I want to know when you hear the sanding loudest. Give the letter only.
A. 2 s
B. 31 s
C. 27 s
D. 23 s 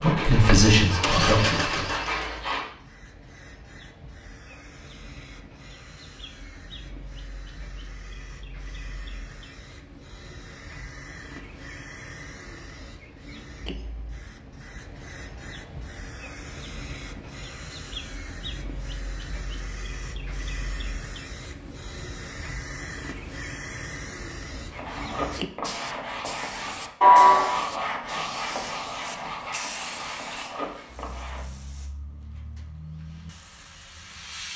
C.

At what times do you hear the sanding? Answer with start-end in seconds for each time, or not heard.
0.0-2.6, 24.7-31.4.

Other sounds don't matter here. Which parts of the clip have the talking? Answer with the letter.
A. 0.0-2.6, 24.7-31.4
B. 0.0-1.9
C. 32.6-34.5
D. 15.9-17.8
B.